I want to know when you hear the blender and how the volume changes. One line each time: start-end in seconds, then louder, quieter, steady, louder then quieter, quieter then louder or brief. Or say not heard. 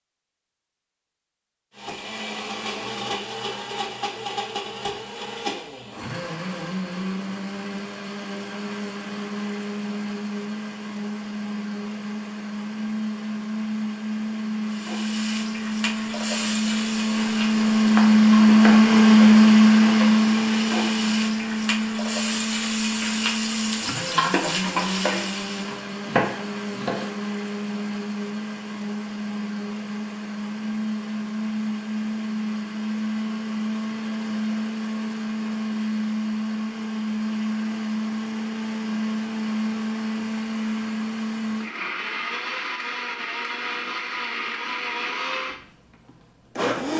1.8-46.9 louder then quieter.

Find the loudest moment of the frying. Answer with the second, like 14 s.
25 s.